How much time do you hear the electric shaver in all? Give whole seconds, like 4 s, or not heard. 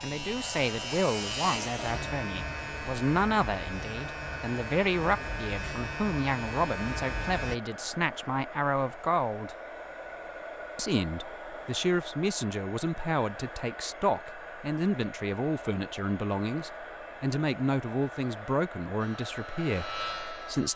9 s.